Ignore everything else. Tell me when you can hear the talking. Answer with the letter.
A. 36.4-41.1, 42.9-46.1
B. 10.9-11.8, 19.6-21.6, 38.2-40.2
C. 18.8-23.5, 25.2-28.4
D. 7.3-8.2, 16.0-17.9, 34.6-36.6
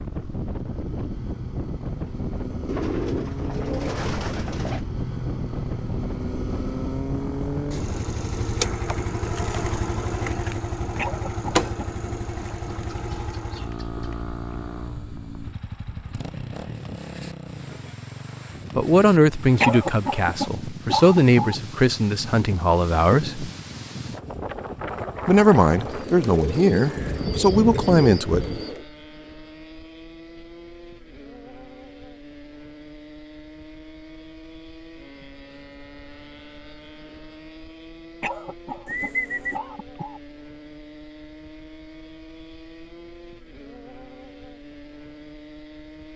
C.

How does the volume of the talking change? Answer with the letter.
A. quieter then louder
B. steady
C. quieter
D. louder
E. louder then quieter
B.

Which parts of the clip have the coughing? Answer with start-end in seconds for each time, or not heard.
10.9-11.8, 19.6-21.6, 38.2-40.2.